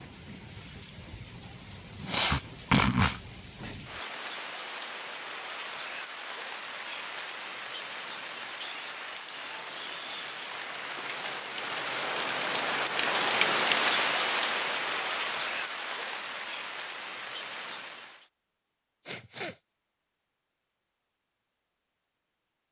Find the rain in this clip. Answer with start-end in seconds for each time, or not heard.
0.0-18.2.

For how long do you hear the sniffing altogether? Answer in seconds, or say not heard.
2 s.